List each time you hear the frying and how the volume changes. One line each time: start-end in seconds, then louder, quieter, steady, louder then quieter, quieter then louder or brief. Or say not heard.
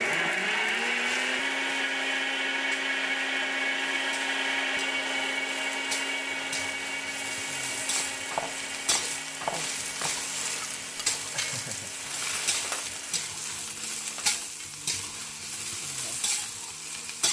0.0-17.2 louder.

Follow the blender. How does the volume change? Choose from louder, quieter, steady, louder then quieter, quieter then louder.
quieter.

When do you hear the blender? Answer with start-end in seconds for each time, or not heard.
0.0-13.3.